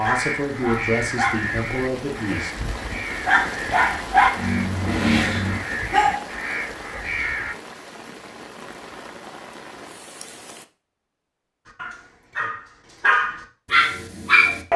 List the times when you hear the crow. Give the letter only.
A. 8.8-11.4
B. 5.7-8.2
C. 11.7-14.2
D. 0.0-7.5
D.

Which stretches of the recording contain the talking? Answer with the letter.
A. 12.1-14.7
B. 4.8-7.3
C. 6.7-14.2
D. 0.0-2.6
D.